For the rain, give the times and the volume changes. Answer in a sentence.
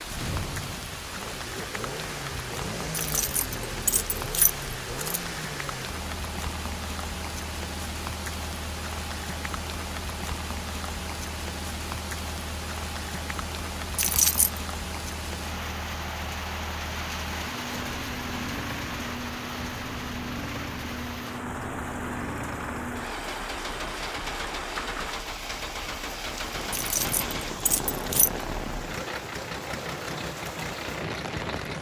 The rain can be heard from 0.0 to 31.7 s, at a steady volume.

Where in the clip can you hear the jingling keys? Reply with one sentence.
The jingling keys can be heard from 2.9 to 5.2 s, from 13.9 to 14.6 s and from 26.7 to 28.3 s.